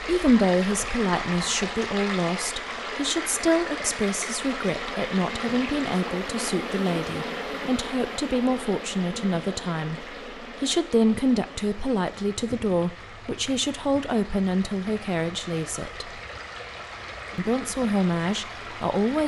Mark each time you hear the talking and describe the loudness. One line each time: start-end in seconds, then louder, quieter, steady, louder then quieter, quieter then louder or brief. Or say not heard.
0.0-16.1 steady
17.4-19.2 brief.